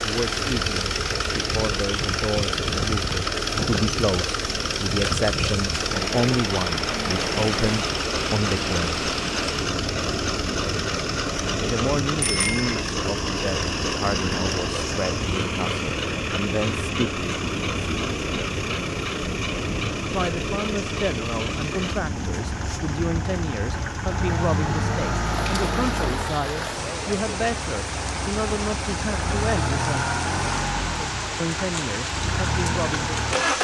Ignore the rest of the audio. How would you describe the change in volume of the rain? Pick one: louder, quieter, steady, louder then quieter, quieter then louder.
steady.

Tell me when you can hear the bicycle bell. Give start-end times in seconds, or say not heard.
12.2-12.8.